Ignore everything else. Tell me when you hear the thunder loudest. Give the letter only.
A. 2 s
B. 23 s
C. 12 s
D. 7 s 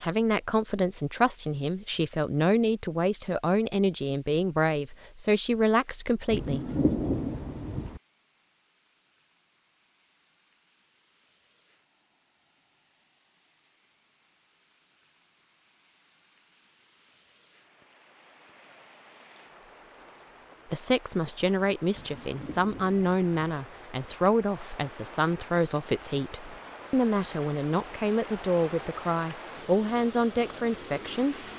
D.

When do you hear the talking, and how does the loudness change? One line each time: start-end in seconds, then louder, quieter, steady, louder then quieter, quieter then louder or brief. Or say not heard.
0.0-6.7 steady
20.6-31.4 steady.